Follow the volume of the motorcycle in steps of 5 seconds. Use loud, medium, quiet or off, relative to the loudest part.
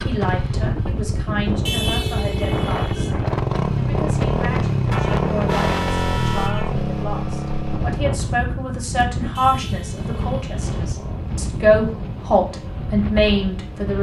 loud, loud, quiet.